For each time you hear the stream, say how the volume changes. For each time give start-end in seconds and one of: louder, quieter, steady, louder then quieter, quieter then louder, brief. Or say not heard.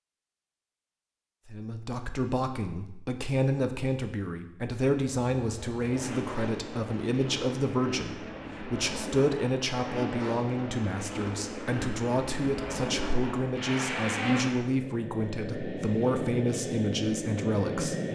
not heard.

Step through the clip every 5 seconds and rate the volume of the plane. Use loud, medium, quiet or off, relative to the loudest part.
off, medium, loud, loud.